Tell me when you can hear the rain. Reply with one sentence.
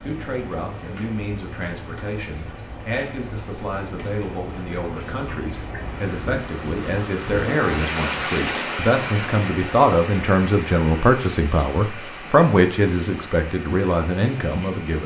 You can hear the rain from 0.0 to 15.0 s.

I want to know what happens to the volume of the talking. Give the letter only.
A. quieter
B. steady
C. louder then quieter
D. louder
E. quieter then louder
D.